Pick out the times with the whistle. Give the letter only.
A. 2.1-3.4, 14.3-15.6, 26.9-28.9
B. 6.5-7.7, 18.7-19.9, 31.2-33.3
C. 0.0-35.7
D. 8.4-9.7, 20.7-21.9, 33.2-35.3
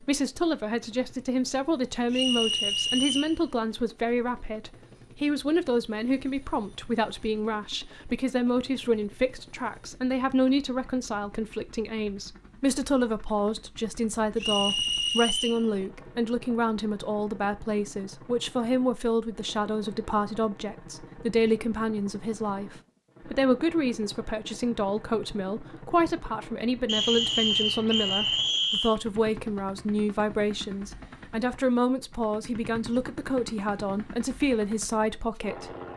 A.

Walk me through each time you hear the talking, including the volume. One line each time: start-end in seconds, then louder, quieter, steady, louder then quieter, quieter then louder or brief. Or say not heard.
0.0-35.7 steady.